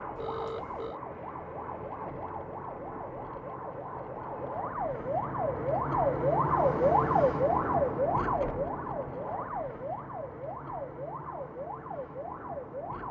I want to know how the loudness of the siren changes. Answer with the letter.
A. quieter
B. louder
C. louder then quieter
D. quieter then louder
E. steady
C.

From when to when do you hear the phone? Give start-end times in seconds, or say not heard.
0.1-1.0.